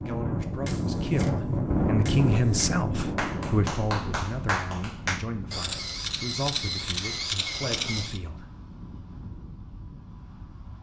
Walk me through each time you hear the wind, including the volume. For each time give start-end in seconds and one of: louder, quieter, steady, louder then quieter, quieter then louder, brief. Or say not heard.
0.0-10.7 quieter.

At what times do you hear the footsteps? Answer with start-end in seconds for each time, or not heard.
not heard.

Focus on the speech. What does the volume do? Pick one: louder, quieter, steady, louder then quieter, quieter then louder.
louder then quieter.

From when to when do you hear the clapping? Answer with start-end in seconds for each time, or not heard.
3.1-5.2.